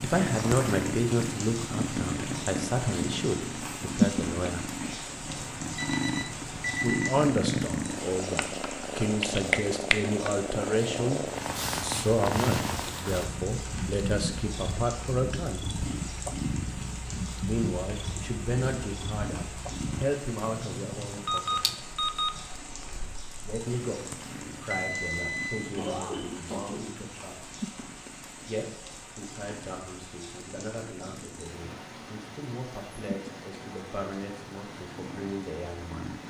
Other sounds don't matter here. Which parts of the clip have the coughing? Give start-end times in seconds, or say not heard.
25.8-27.0.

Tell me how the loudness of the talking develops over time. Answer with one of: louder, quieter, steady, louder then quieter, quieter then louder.
quieter.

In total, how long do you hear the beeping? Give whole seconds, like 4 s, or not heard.
4 s.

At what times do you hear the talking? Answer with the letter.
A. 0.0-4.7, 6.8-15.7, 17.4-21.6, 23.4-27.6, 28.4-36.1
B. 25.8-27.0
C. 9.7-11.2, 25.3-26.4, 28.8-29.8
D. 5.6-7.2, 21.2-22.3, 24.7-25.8
A.